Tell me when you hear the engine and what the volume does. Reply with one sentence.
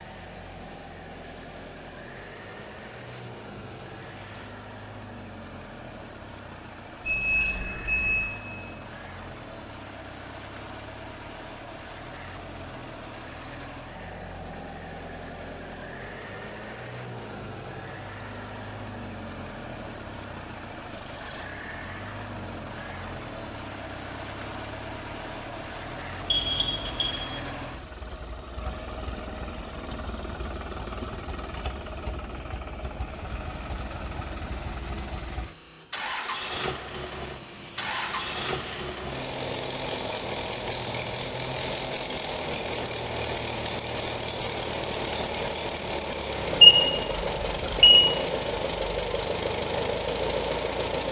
The engine can be heard from 0.0 to 51.0 s, getting louder.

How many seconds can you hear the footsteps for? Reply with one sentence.
The footsteps can't be heard in this clip.